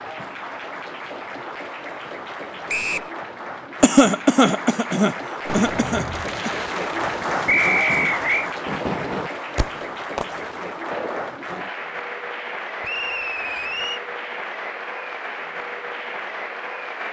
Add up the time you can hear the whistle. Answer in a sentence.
The whistle can be heard for 3 seconds in total.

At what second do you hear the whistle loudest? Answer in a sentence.
The volume of the whistle peaks at 8 seconds.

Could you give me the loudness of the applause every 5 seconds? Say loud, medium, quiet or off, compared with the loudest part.
medium, loud, loud, loud.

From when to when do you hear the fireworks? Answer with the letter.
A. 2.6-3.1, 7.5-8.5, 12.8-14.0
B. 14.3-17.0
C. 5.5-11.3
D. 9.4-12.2
C.